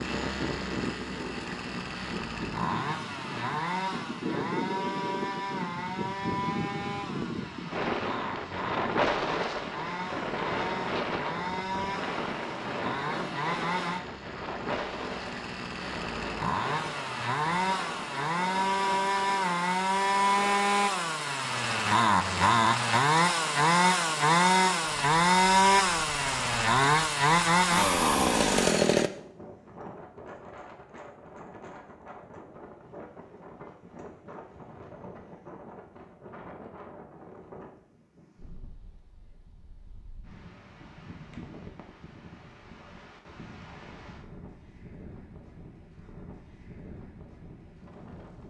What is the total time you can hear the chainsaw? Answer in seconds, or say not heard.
29 s.